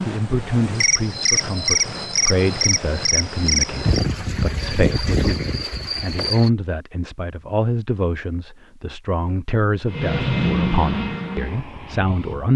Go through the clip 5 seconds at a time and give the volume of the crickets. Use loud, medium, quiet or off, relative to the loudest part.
loud, loud, off.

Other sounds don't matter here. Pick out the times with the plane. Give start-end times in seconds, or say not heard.
9.8-12.5.